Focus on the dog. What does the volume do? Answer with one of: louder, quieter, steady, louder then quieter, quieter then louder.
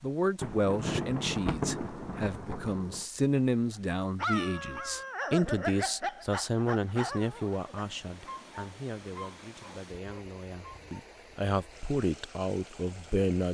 quieter.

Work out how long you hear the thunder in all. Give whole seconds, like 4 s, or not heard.
3 s.